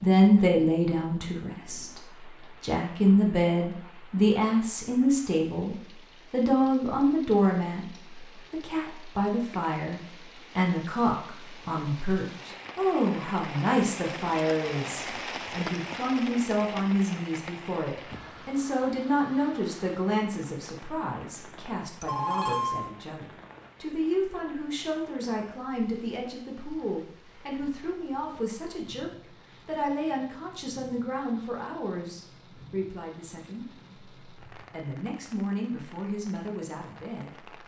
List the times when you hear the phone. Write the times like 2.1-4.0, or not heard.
22.0-22.9.